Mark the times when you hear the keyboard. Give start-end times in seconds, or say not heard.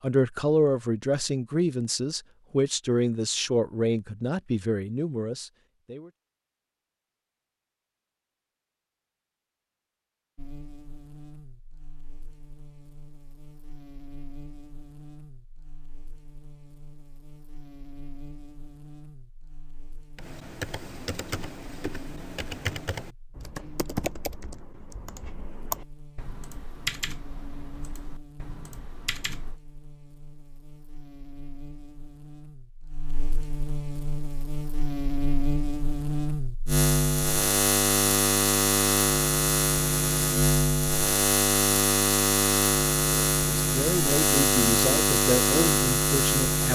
20.1-29.6.